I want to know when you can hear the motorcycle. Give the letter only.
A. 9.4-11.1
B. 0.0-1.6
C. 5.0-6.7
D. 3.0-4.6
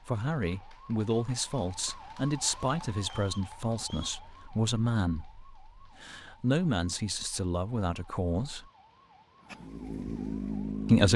A.